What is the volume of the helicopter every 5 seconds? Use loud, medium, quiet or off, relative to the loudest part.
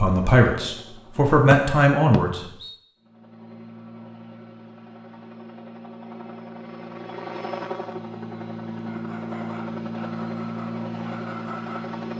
quiet, loud, loud.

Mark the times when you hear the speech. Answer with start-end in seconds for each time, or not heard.
0.0-2.5.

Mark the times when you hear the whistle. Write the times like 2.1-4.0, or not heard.
1.5-2.8.